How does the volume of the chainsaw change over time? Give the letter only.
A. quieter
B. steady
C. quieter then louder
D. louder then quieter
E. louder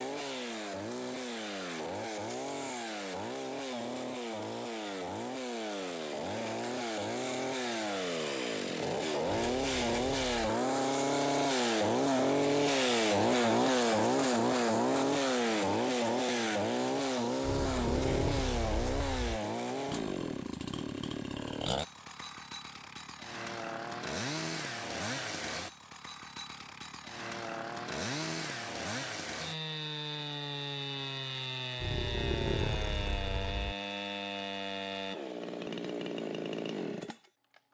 D.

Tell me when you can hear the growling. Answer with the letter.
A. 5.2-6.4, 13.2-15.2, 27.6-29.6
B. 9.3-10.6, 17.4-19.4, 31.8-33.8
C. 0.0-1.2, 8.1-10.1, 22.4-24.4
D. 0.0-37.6
B.